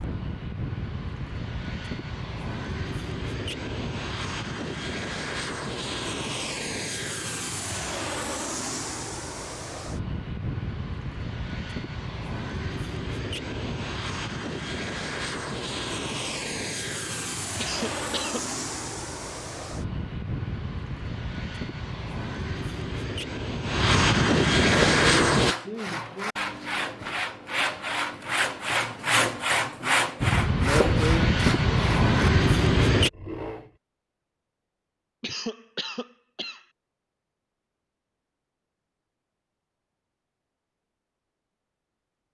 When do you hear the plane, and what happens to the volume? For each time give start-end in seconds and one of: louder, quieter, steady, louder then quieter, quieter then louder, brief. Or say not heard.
0.0-25.6 louder
30.2-33.1 brief.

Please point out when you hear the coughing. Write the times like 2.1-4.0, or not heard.
17.6-18.5, 35.2-36.6.